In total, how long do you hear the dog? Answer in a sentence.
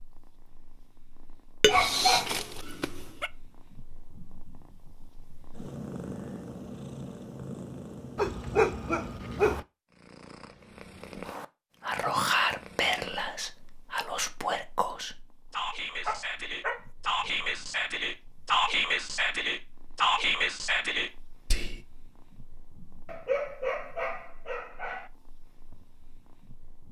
You can hear the dog for 6 seconds altogether.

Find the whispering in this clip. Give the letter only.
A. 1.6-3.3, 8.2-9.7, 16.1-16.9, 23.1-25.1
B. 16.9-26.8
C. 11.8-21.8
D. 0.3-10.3
C.